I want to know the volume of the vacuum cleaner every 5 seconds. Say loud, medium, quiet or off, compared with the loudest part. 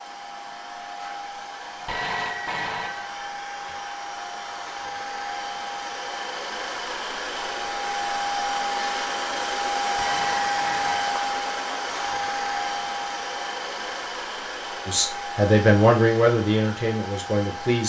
medium, loud, loud, medium.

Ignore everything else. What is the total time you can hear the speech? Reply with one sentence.
You can hear the speech for 3 seconds altogether.